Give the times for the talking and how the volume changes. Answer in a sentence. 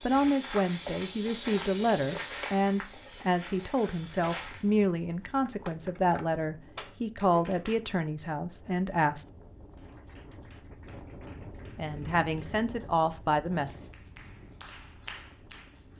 The talking can be heard from 0.0 to 9.2 s, at a steady volume; and briefly from 11.8 to 13.8 s.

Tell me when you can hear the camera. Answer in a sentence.
The camera can't be heard in this clip.